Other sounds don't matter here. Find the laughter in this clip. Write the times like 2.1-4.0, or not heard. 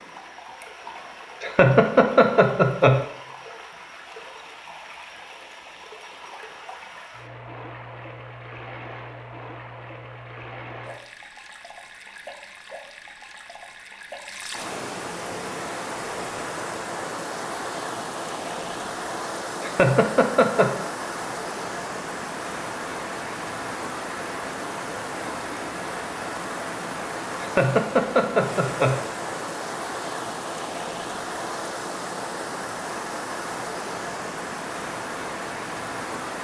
1.4-3.0, 19.6-20.9, 27.4-28.9.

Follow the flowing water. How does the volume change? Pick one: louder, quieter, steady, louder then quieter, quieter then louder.
louder.